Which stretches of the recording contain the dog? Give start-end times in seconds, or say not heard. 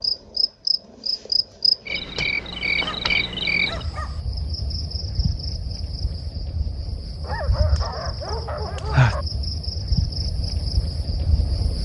2.5-4.2, 7.2-9.2.